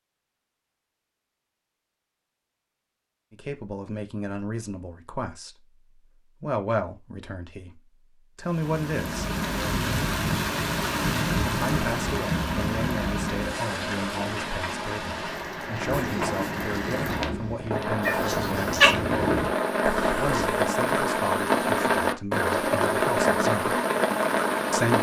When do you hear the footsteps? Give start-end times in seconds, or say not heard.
15.7-20.6.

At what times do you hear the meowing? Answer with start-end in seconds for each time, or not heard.
18.0-18.9.